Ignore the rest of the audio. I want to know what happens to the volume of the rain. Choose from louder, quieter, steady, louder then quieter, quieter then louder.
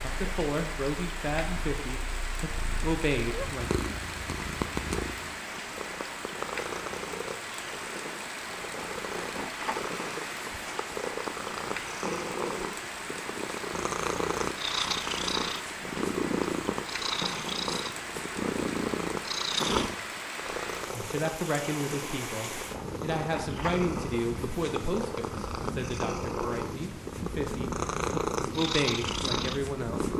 steady.